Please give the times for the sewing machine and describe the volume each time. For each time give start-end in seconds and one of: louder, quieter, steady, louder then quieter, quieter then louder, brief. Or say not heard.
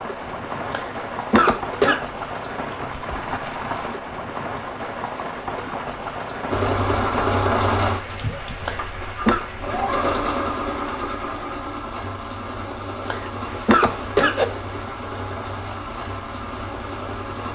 6.5-17.5 quieter.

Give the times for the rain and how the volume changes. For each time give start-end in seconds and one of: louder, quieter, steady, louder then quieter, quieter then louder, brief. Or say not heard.
0.0-17.5 quieter.